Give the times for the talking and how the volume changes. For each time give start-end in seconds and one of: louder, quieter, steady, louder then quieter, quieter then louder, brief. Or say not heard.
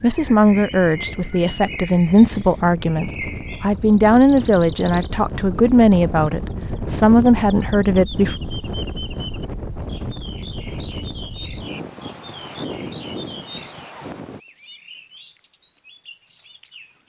0.0-8.3 steady.